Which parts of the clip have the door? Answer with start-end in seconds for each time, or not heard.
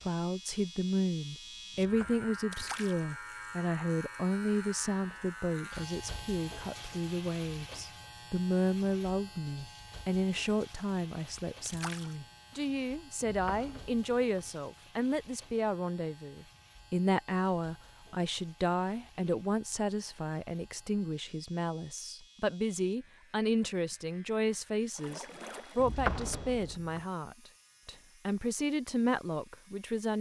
1.8-2.4, 13.2-14.5, 25.8-27.0.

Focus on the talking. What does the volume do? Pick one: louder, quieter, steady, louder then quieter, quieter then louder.
steady.